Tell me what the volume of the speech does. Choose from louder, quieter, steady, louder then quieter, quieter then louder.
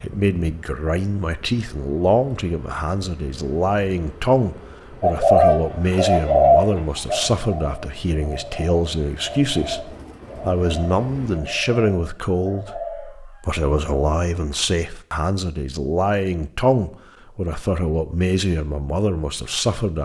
steady.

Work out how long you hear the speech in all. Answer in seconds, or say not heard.
20 s.